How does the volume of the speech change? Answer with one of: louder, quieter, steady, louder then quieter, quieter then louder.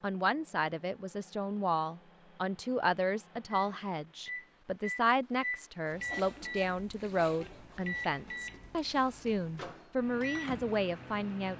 steady.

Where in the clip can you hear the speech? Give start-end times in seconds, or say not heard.
0.0-11.5.